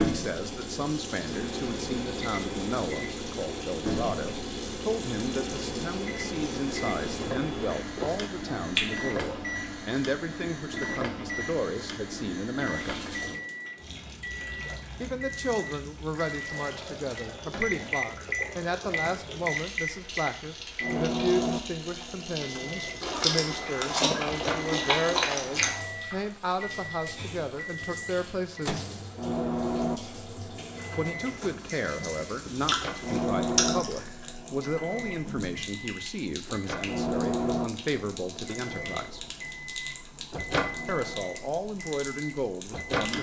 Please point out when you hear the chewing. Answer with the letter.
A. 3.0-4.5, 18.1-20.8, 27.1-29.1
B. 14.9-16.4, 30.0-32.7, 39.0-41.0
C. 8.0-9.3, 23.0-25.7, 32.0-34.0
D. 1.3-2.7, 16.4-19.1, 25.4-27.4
C.